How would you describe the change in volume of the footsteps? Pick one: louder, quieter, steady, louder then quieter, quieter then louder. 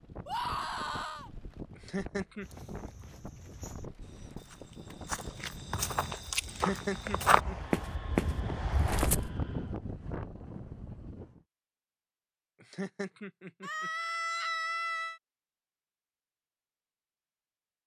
louder.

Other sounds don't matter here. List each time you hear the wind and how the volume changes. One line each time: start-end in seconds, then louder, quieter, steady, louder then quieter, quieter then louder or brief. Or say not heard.
0.0-11.4 louder.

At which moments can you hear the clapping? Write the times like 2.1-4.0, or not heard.
not heard.